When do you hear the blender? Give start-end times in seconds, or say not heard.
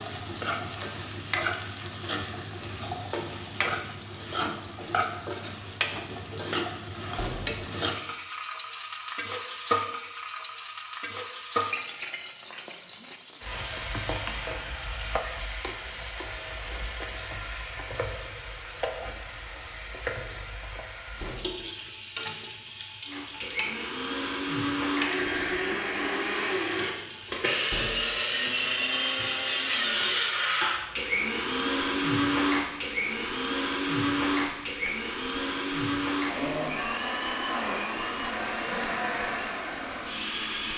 23.1-40.7.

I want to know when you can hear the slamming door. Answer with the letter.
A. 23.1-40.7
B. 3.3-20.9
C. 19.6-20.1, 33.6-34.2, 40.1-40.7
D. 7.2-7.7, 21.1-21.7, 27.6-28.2
D.